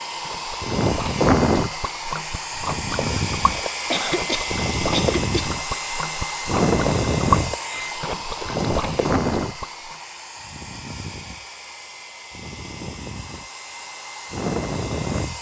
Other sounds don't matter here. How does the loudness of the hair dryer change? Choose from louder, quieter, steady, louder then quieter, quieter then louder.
quieter.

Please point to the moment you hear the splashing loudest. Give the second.
7 s.